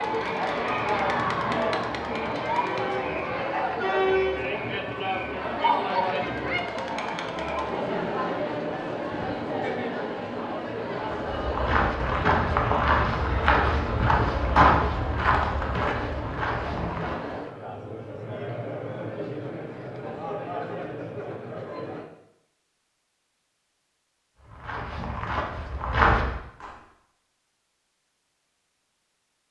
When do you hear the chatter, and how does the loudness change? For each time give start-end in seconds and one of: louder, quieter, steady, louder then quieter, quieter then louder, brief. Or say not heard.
0.0-22.1 quieter.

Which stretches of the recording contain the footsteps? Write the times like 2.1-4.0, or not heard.
11.0-17.3, 24.4-26.8.